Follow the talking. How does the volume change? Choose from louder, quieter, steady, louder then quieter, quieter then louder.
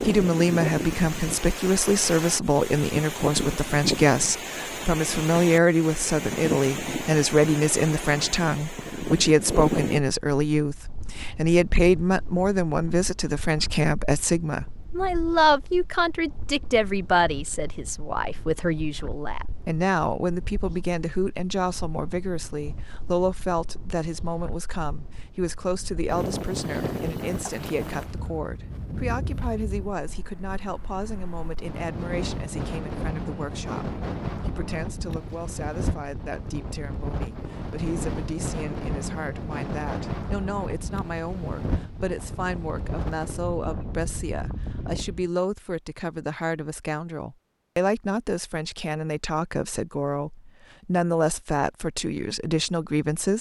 quieter then louder.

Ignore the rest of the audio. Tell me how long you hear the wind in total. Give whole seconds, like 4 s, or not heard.
45 s.